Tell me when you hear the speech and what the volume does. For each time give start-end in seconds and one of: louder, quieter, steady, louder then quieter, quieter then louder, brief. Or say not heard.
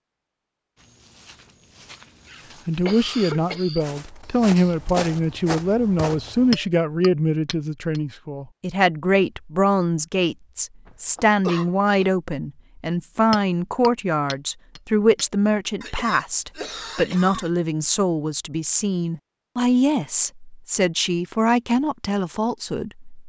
2.6-23.1 steady.